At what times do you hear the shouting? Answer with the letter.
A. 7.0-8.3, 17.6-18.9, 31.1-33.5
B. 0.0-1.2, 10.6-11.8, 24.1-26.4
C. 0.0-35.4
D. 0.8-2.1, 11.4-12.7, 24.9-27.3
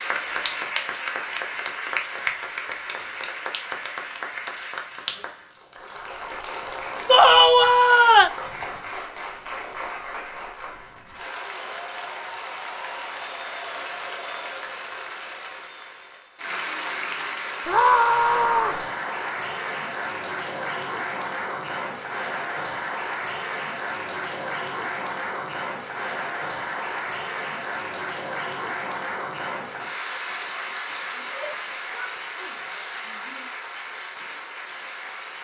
A.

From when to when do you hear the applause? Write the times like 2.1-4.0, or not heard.
0.0-35.4.